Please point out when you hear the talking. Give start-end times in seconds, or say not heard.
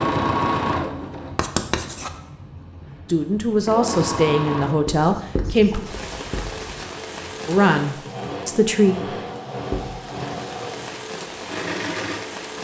3.0-5.8, 7.5-9.1.